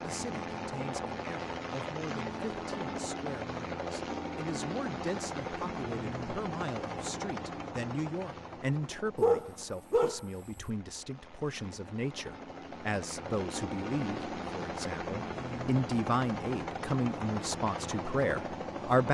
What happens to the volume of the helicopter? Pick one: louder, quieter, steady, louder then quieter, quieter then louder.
quieter then louder.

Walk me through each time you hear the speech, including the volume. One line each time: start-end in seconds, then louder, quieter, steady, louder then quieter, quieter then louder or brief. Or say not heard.
0.0-19.0 louder.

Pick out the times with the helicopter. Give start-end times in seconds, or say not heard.
0.0-19.0.